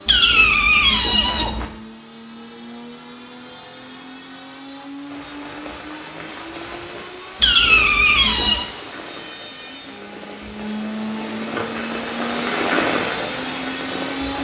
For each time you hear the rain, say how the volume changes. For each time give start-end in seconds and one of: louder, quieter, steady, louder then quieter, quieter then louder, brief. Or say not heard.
5.0-14.3 louder.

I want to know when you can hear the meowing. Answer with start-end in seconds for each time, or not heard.
0.1-1.6, 7.4-8.7.